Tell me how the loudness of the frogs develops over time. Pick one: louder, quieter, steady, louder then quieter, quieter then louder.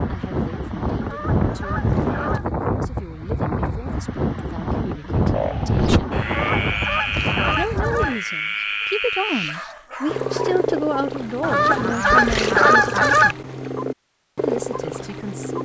steady.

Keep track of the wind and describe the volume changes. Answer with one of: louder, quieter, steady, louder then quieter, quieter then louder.
steady.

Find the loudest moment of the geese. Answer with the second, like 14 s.
13 s.